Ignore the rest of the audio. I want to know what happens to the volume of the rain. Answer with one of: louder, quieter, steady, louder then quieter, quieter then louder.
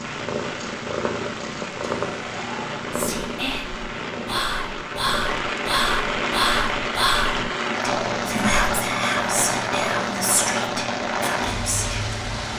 louder.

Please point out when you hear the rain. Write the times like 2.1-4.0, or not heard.
0.0-12.5.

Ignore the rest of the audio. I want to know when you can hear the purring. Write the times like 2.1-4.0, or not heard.
0.0-7.5.